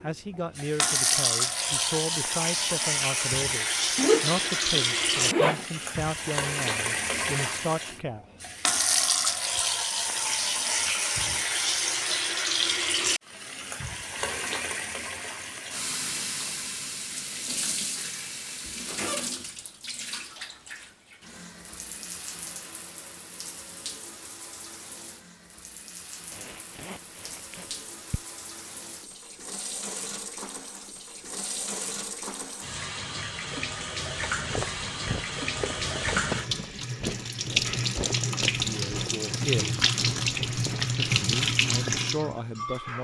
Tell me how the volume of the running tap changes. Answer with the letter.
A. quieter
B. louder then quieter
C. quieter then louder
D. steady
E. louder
C.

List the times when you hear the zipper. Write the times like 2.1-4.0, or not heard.
4.0-5.7, 26.3-28.2.